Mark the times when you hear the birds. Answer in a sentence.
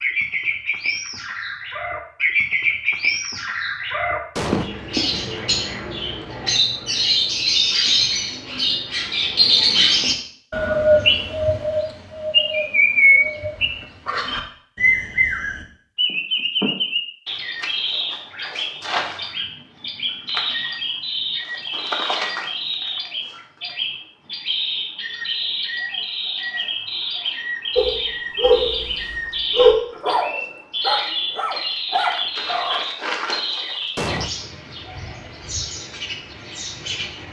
You can hear the birds from 0.0 to 37.2 s.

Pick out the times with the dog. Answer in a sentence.
You can hear the dog from 27.8 to 32.8 s.